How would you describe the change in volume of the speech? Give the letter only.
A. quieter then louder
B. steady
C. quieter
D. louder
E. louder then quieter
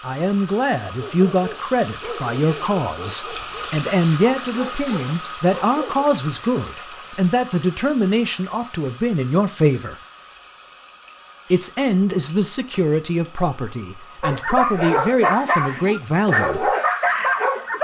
B.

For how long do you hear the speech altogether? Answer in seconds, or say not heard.
15 s.